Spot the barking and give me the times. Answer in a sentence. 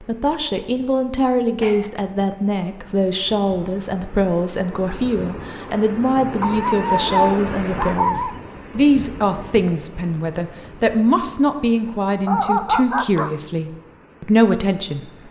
The barking can be heard from 1.6 to 2.0 s, from 6.4 to 8.3 s and from 12.2 to 13.3 s.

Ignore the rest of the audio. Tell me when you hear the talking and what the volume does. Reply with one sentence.
You can hear the talking from 0.0 to 15.1 s, at a steady volume.